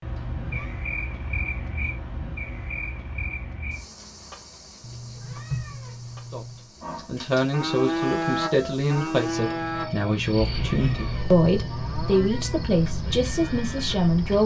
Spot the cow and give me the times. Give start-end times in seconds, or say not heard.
6.8-14.4.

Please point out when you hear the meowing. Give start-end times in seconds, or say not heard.
0.1-0.8, 4.8-6.7, 10.4-12.8.